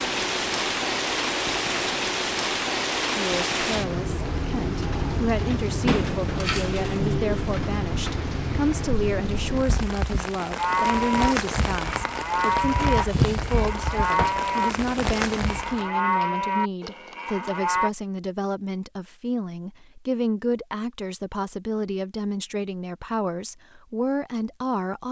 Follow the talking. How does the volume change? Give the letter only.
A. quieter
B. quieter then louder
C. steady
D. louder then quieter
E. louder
C.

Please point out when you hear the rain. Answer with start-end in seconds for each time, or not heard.
0.0-15.8.